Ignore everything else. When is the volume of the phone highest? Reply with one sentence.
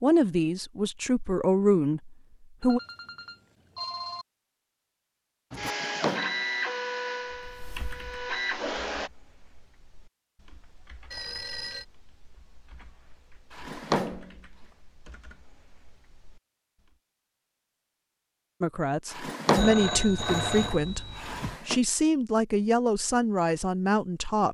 The volume of the phone peaks at 20 seconds.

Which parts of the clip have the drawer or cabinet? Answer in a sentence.
You can hear the drawer or cabinet from 5.7 to 6.4 s, from 13.5 to 14.3 s and from 19.1 to 21.8 s.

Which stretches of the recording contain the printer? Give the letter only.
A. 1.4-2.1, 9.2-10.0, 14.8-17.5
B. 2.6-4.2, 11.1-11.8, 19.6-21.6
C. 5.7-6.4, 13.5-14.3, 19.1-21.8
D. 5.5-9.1
D.